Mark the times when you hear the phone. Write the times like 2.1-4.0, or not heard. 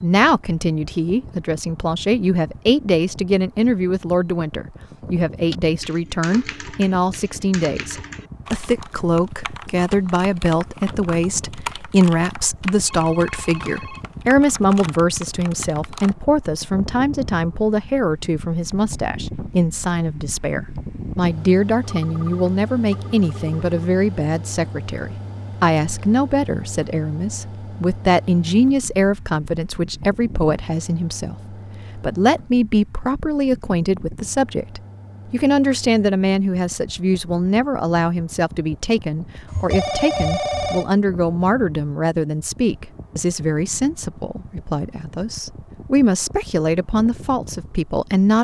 12.8-14.1, 21.8-23.6, 39.5-40.9.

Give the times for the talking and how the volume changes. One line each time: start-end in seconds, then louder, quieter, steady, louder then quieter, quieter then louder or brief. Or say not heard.
0.0-48.3 steady.